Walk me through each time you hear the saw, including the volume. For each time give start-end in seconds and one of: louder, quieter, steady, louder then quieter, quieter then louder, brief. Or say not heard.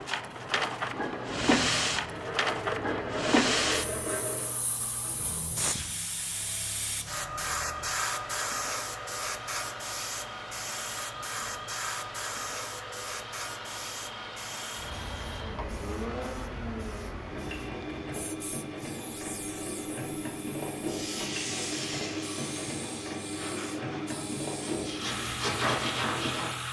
2.0-4.5 brief
20.8-26.6 quieter then louder.